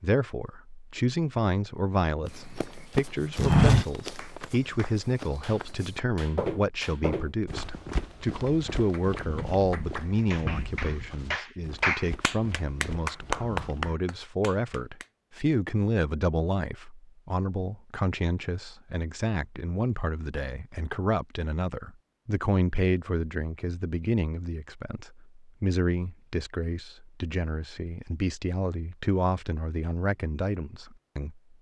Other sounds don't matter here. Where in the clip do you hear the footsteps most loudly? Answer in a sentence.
The volume of the footsteps peaks at 4 seconds.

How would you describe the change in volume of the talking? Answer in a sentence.
The loudness of the talking stays about the same.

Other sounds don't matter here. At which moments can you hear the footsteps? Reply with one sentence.
The footsteps can be heard from 2.4 to 14.0 s.